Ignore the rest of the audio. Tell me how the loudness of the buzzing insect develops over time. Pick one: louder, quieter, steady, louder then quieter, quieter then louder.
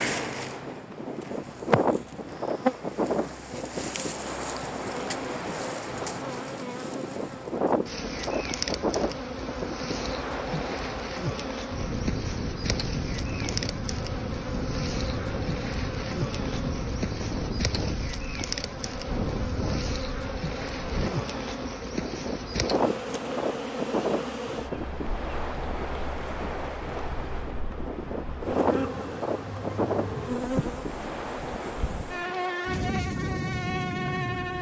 steady.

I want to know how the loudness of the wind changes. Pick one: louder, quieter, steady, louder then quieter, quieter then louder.
steady.